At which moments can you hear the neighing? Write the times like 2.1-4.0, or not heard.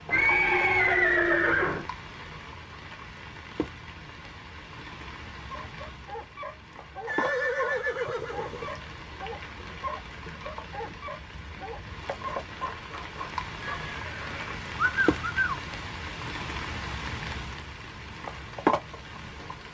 0.1-1.9, 7.0-8.8, 13.8-15.6.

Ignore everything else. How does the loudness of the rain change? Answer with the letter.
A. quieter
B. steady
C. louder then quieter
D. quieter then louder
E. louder
E.